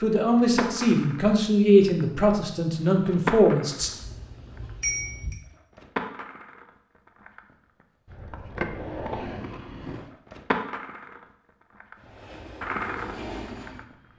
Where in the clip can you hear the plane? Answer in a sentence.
The plane can be heard from 11.9 to 14.1 s.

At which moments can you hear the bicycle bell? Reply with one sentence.
The bicycle bell can be heard from 3.8 to 5.3 s.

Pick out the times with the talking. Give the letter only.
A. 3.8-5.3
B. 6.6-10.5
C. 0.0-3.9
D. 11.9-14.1
C.